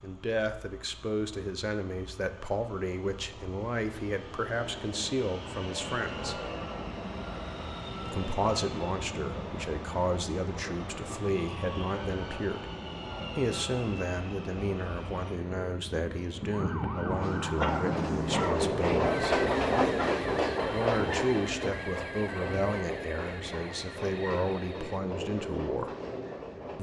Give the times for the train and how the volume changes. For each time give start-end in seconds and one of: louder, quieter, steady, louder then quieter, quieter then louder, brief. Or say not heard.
0.0-26.7 louder then quieter.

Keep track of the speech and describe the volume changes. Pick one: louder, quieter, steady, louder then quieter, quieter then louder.
steady.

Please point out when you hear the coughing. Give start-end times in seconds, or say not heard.
17.6-18.7.